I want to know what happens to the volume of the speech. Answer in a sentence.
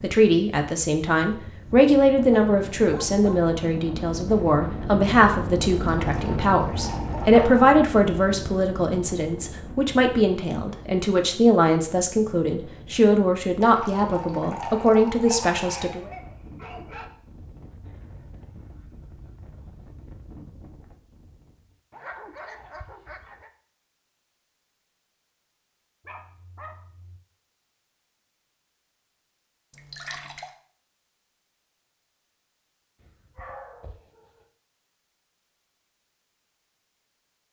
The volume of the speech stays about the same.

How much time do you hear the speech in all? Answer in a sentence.
You can hear the speech for 16 seconds altogether.